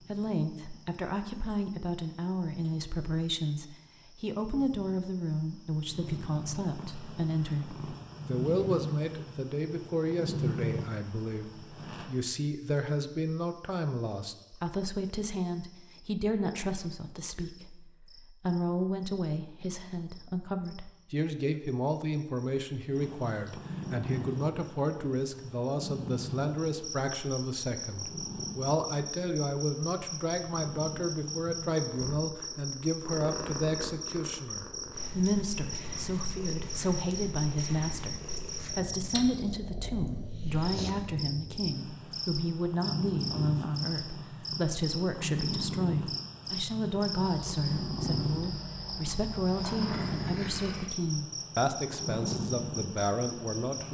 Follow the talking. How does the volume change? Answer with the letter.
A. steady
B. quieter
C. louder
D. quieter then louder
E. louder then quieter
A.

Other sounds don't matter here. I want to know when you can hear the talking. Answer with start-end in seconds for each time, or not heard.
0.1-53.8.